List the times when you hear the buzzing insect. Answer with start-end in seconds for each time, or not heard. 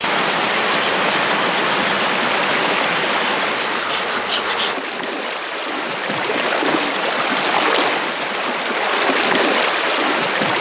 0.0-4.8.